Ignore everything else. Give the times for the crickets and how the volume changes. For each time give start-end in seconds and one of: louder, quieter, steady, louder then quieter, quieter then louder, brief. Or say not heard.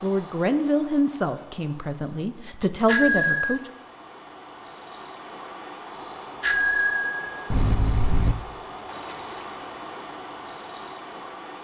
0.0-11.6 louder.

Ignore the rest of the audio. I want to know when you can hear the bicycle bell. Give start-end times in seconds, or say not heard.
2.9-3.6, 6.4-8.3.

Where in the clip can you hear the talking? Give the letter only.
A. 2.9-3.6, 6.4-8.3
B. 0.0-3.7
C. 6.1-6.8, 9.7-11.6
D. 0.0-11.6
B.